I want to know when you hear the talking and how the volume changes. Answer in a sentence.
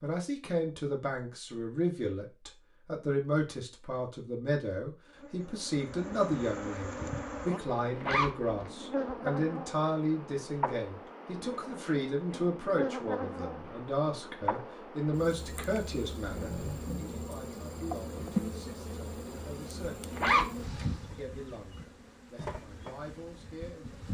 You can hear the talking from 0.0 to 20.1 s, getting quieter; and briefly from 21.1 to 24.0 s.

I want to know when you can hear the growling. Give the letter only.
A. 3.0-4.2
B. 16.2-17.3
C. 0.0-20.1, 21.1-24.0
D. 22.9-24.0
B.